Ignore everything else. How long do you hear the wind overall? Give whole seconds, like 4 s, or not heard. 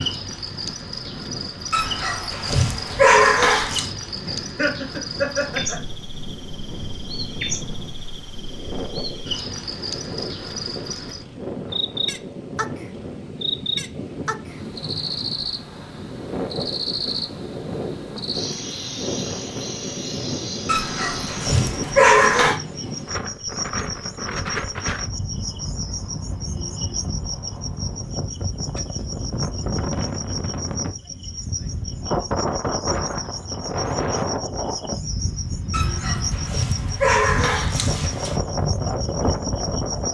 40 s.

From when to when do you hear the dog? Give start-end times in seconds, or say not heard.
1.7-3.9, 20.6-22.6, 35.7-38.4.